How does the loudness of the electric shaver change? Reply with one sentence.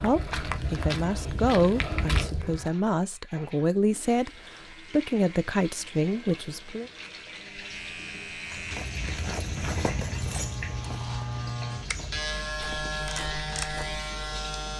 The loudness of the electric shaver goes up.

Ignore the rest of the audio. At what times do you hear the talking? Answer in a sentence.
The talking can be heard from 0.0 to 4.3 s and from 4.9 to 6.9 s.